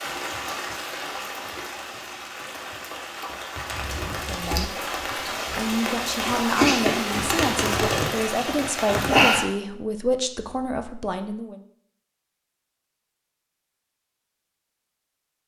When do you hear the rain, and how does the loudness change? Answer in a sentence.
The rain can be heard from 0.0 to 9.4 s, getting louder.